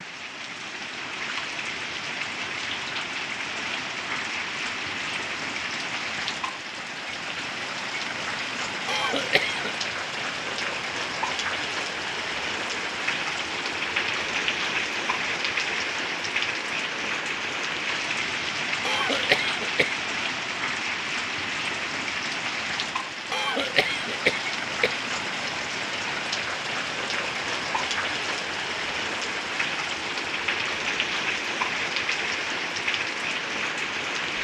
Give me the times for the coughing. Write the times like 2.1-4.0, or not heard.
8.8-9.8, 18.9-20.1, 23.3-25.0.